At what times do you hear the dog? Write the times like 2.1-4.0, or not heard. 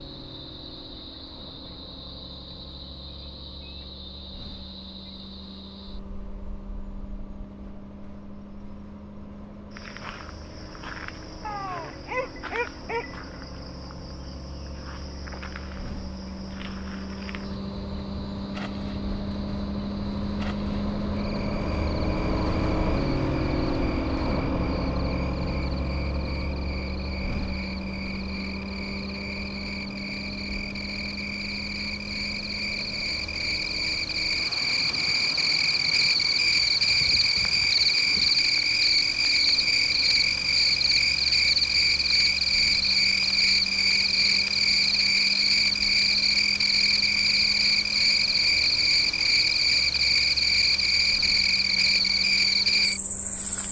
11.4-13.2.